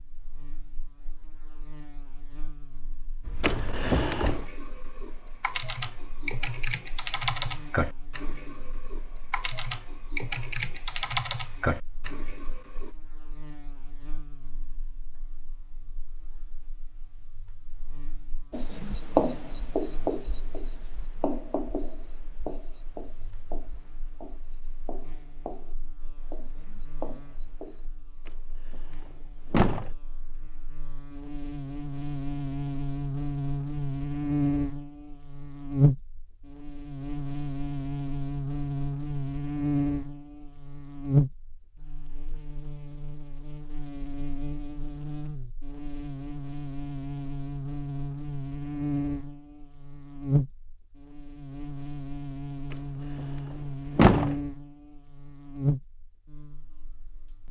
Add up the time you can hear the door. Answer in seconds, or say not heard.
4 s.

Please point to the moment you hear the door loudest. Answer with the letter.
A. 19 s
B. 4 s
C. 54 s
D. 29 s
C.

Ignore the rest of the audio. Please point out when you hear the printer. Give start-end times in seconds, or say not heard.
not heard.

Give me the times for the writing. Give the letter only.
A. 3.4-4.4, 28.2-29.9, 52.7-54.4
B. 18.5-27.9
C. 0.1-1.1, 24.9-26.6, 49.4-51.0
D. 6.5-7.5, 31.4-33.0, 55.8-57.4
B.